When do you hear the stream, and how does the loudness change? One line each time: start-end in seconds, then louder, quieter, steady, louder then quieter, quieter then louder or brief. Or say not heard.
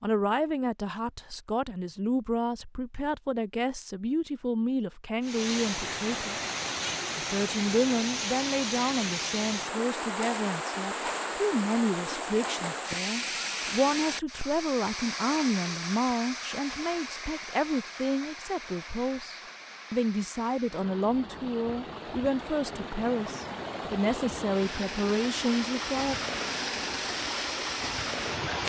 5.2-28.6 quieter then louder.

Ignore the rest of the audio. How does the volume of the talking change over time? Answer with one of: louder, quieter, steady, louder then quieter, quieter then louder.
steady.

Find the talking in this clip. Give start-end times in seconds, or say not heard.
0.0-6.3, 7.2-26.2.